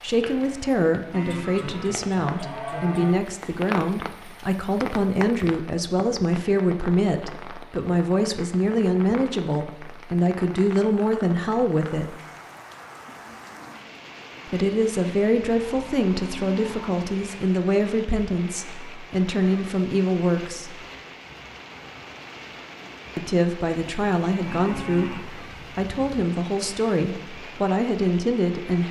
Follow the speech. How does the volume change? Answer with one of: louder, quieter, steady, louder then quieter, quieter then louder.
steady.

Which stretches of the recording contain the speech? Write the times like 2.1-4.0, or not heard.
0.0-12.2, 14.4-20.8, 23.1-28.8.